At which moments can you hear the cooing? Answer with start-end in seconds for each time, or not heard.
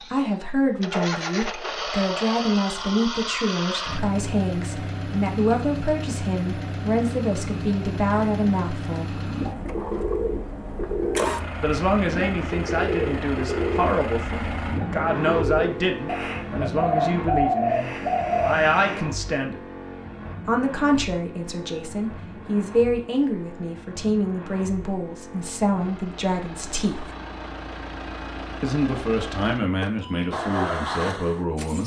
9.2-19.1.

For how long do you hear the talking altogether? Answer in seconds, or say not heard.
27 s.